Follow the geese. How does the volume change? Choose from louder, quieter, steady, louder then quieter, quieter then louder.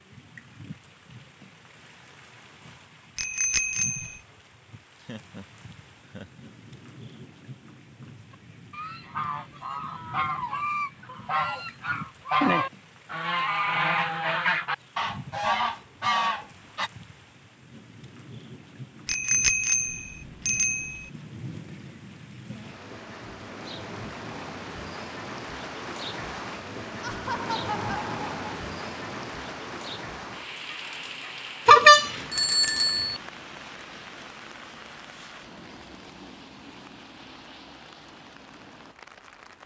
louder.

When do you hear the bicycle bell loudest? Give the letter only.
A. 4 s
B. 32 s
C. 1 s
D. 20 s
B.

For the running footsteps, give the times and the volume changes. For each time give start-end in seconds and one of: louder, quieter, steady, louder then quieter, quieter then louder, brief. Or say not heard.
not heard.